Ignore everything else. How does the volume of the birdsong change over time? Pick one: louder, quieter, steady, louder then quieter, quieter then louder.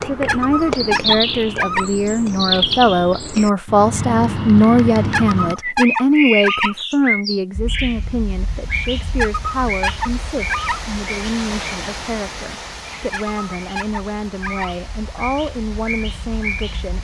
quieter.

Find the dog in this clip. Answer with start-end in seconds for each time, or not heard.
0.2-1.9, 5.1-6.8, 9.2-10.8, 13.1-14.8.